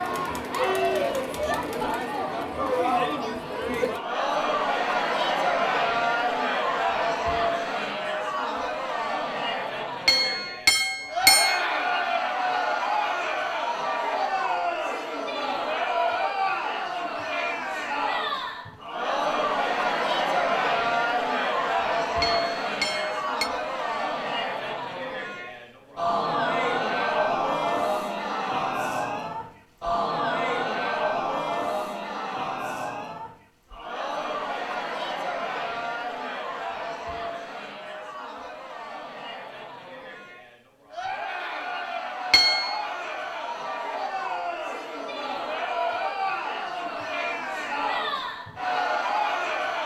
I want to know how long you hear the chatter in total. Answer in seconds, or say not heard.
50 s.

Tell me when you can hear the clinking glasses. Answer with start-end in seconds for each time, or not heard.
10.1-11.7, 22.2-23.5, 42.3-42.8.